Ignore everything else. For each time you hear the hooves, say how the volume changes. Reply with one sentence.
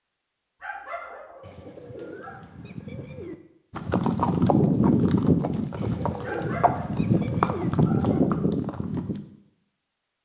You can hear the hooves from 3.7 to 9.2 s, getting quieter then louder.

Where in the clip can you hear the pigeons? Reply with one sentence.
The pigeons can be heard from 1.4 to 3.4 s and from 5.8 to 7.7 s.